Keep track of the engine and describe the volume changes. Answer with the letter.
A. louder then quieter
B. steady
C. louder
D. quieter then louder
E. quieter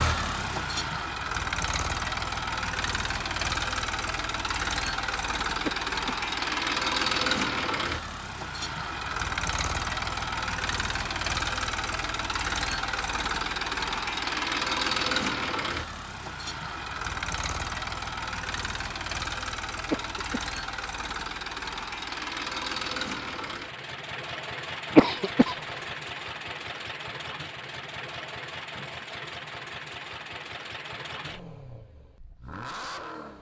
E.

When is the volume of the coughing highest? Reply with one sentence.
The volume of the coughing peaks at 25 seconds.